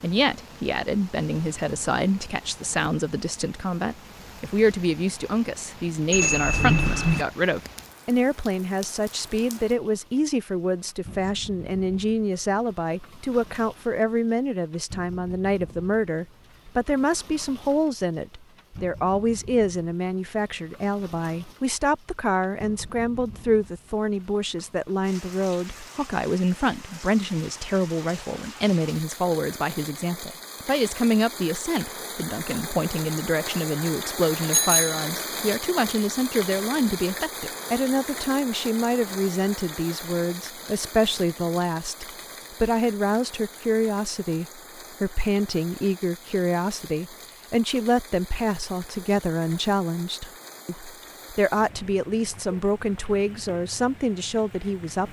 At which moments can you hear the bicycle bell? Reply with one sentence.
You can hear the bicycle bell from 6.1 to 7.2 s and from 34.5 to 35.1 s.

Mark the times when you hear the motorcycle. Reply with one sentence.
The motorcycle can't be heard in this clip.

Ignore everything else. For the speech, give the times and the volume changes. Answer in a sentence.
The speech can be heard from 0.0 to 55.0 s, at a steady volume.